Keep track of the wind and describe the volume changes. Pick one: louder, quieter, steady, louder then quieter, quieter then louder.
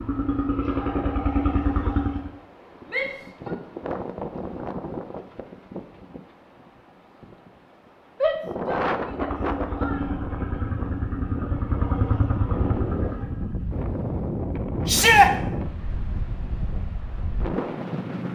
louder.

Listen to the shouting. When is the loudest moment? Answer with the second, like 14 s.
15 s.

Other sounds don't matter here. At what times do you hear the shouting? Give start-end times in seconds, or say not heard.
2.9-3.5, 8.2-10.0, 14.8-15.3.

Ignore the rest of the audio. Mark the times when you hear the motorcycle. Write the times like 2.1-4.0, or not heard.
0.0-2.3, 9.0-13.7.